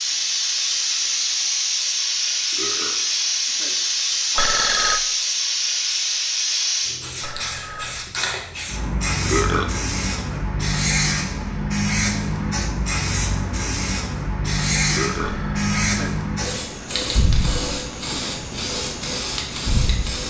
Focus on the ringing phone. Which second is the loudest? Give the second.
5 s.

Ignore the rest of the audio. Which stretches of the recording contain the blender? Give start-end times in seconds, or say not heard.
not heard.